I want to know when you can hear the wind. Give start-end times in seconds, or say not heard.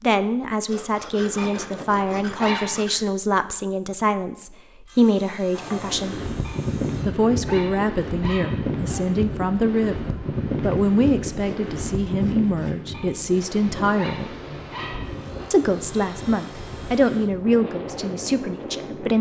5.5-19.1.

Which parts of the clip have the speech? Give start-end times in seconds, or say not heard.
0.0-6.2, 7.0-14.3, 15.5-19.1.